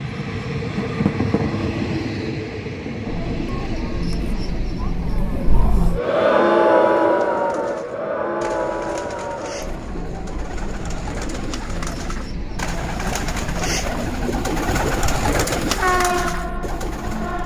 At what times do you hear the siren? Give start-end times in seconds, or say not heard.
not heard.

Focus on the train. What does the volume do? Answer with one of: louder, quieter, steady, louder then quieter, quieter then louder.
quieter then louder.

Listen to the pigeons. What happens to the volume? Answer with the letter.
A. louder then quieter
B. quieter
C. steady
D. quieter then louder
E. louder
E.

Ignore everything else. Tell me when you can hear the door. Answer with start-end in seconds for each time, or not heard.
0.8-1.4.